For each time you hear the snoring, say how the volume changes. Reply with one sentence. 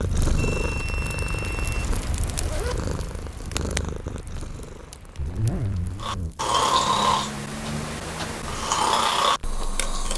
The snoring can be heard from 6.0 to 10.1 s, getting quieter then louder.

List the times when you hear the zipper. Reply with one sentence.
The zipper can be heard from 2.2 to 2.8 s and from 5.2 to 6.3 s.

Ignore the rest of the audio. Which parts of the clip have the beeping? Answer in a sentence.
You can hear the beeping from 0.3 to 1.8 s.